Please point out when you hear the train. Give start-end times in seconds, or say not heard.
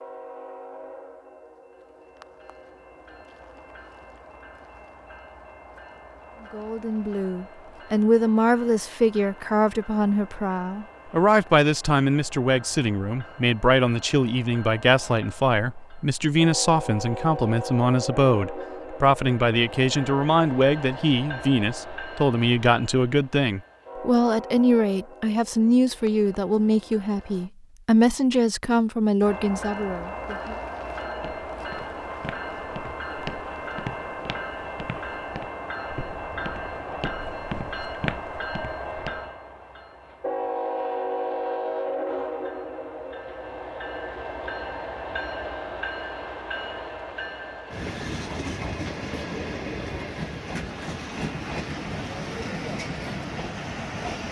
0.0-27.5, 29.2-54.2.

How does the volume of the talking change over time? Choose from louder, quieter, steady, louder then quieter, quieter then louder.
steady.